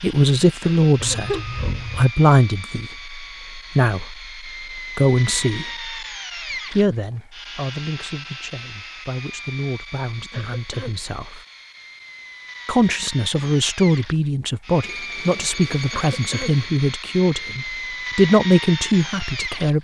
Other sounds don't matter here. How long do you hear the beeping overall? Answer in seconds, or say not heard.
3 s.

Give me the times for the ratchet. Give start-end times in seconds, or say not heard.
not heard.